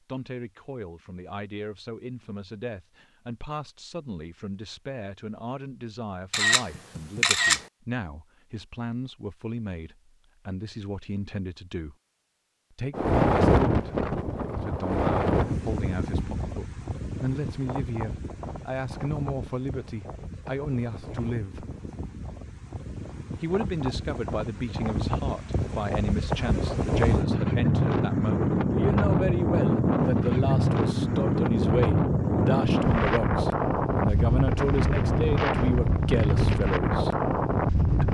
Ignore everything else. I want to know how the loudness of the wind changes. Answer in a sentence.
The loudness of the wind goes down, then up.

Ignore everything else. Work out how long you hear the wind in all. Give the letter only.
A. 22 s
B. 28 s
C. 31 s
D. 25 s
D.